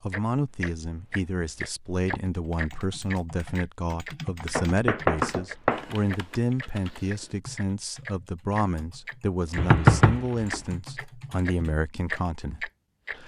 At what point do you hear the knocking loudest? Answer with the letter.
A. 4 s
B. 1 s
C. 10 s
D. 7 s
C.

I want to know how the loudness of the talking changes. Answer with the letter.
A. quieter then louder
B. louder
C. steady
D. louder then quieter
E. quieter
C.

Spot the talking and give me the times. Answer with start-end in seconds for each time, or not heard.
0.0-13.2.